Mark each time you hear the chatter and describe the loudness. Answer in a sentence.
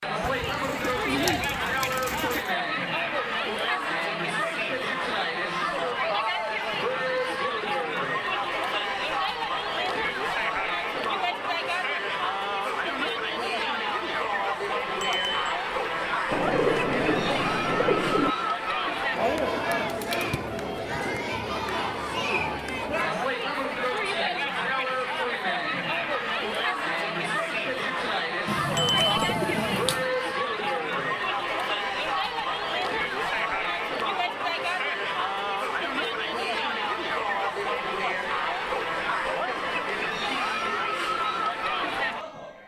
The chatter can be heard from 0.0 to 42.6 s, at a steady volume.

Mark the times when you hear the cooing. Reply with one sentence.
You can hear the cooing from 0.2 to 2.4 s, from 16.3 to 18.4 s and from 28.4 to 30.1 s.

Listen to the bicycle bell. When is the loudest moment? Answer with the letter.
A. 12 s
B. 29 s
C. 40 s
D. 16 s
B.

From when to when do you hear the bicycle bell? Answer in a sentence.
The bicycle bell can be heard from 15.0 to 15.6 s and from 28.8 to 29.3 s.